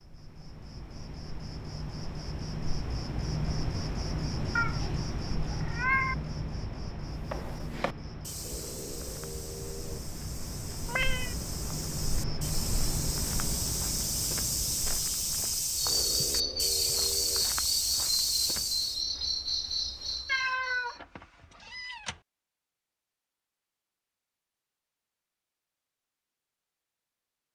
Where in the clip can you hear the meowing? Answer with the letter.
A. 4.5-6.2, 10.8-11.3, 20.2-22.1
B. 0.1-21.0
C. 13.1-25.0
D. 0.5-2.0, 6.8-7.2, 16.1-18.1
A.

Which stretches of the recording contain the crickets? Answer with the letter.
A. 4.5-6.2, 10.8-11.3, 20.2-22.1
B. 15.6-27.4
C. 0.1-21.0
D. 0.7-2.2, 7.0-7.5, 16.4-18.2
C.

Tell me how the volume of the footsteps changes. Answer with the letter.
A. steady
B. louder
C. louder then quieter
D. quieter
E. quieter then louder
B.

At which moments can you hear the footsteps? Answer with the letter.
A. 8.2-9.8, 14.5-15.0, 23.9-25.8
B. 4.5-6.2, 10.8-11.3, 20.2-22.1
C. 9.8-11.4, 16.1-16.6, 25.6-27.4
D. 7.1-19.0
D.